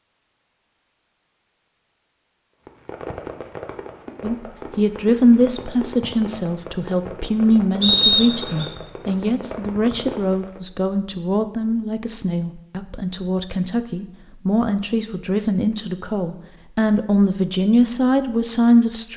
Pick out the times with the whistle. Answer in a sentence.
You can hear the whistle from 7.8 to 8.7 s.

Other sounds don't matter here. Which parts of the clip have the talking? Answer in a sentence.
You can hear the talking from 4.2 to 19.1 s.